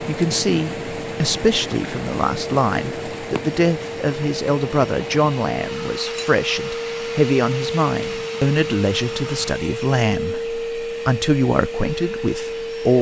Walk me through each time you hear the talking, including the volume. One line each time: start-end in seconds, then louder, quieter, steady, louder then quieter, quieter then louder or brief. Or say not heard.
0.0-12.9 steady.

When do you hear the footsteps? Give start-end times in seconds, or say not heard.
not heard.